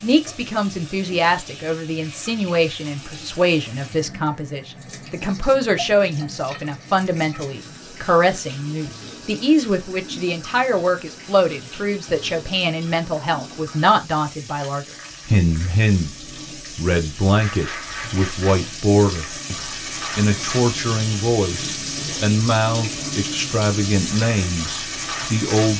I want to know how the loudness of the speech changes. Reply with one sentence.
The loudness of the speech stays about the same.